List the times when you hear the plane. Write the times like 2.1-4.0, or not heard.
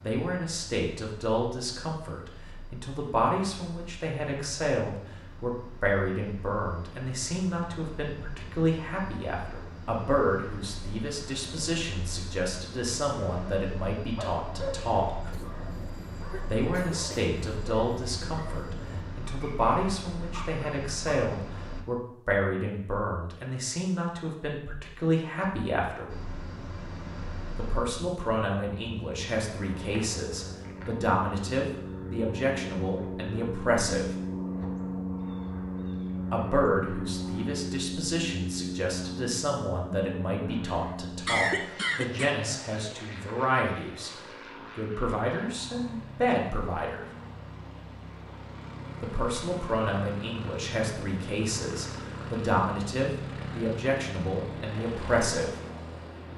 0.0-21.9, 26.1-56.3.